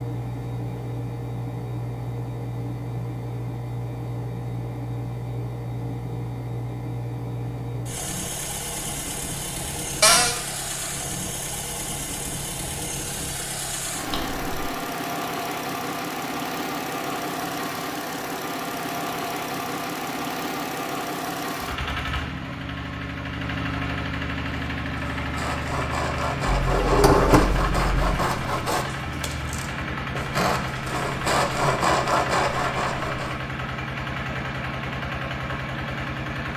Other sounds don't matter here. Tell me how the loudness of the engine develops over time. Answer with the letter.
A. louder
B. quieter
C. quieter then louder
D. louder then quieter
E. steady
E.